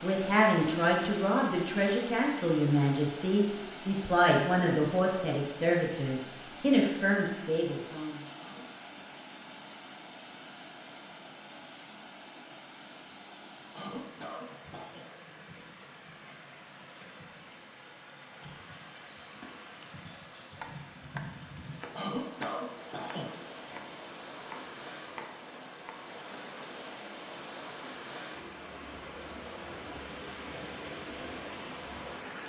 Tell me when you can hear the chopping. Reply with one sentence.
The chopping can be heard from 20.6 to 26.1 s.